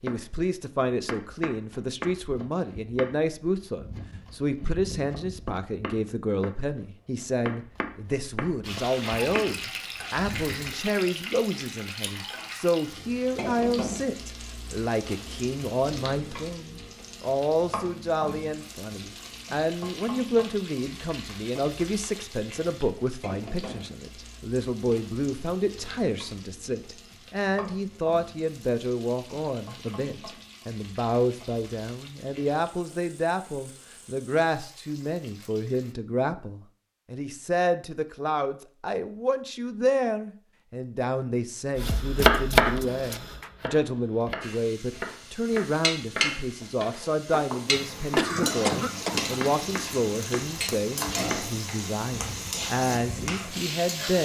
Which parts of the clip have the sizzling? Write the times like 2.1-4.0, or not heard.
8.6-36.0, 44.4-54.2.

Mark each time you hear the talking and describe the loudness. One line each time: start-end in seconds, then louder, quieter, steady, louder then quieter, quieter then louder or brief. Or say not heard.
0.0-54.2 steady.